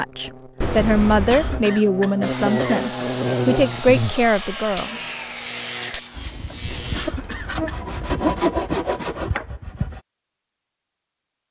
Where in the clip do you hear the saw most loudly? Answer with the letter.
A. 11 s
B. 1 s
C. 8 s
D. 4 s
C.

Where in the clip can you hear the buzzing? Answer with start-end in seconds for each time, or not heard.
0.0-8.1.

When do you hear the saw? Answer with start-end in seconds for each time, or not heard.
2.2-10.0.